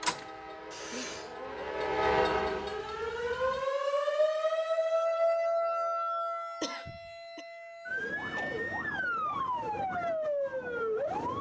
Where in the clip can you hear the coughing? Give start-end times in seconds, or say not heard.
0.7-1.4, 6.6-7.5.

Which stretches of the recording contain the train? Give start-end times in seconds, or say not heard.
0.0-3.6.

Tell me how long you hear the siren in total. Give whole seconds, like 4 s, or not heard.
11 s.